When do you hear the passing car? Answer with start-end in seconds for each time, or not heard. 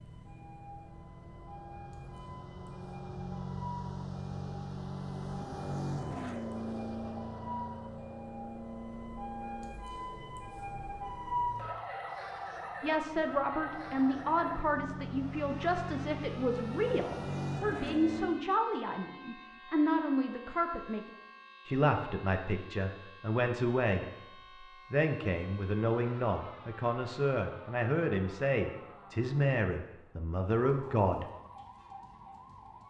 0.0-18.4.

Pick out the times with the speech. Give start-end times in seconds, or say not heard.
12.8-21.0, 21.6-24.1, 24.9-31.2.